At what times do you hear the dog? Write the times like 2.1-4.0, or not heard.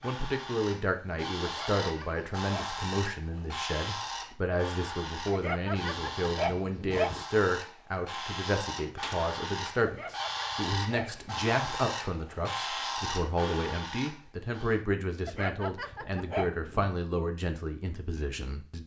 1.4-2.8, 5.3-7.2, 9.8-11.8, 15.2-16.9.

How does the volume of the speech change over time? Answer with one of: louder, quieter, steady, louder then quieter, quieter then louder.
steady.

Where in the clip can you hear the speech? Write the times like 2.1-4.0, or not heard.
0.0-18.8.